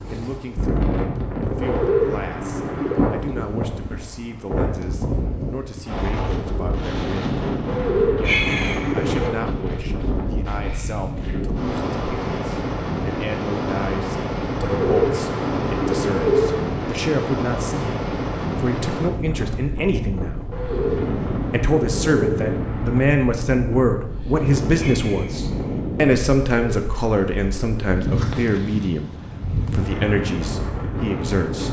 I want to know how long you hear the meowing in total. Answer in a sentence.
You can hear the meowing for 2 seconds altogether.